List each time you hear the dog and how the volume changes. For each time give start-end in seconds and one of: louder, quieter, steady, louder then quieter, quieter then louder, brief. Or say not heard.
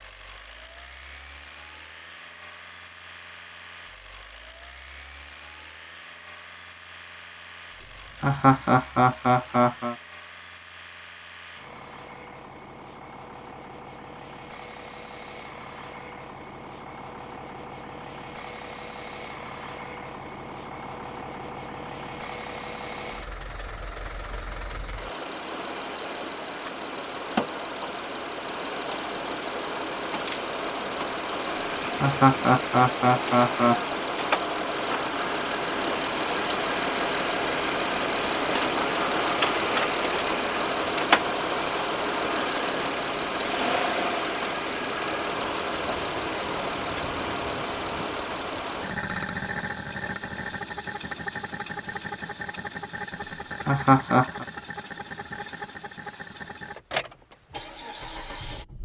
not heard.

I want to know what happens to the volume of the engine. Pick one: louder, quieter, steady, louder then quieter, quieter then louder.
louder then quieter.